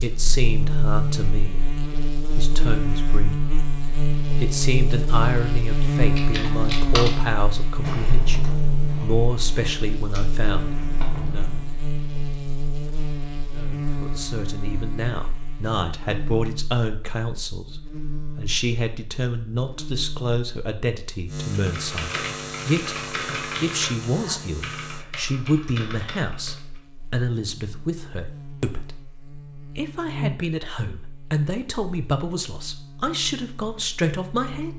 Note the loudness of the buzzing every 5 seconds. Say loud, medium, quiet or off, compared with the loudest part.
loud, loud, medium, medium, medium, quiet, medium.